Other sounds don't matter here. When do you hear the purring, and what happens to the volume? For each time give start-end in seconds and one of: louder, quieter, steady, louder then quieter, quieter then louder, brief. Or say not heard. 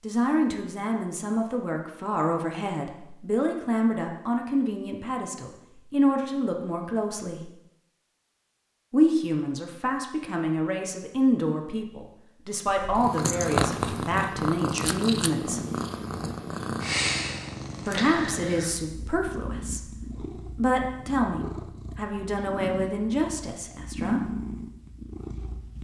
12.7-25.7 quieter.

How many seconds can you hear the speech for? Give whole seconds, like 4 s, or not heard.
20 s.